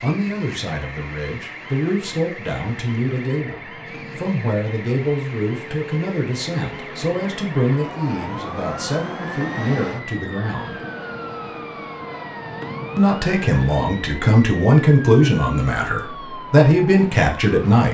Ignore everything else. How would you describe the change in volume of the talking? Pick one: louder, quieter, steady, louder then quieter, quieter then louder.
louder.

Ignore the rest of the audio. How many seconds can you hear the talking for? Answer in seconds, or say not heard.
16 s.